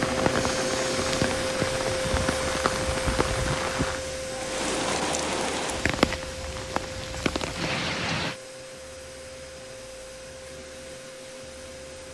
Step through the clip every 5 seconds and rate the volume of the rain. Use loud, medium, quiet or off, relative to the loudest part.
loud, loud, off.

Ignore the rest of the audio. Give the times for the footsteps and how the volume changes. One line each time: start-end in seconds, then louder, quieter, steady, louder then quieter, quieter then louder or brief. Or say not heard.
not heard.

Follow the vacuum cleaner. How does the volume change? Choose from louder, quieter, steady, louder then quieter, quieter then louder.
quieter.